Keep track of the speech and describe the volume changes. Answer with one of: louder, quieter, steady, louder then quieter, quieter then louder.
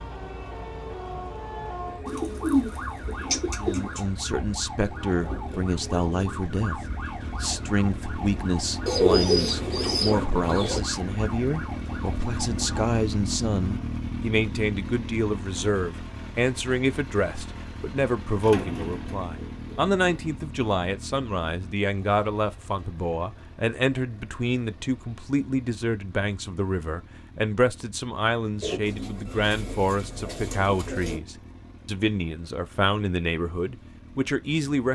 steady.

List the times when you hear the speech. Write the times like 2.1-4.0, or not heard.
3.5-34.9.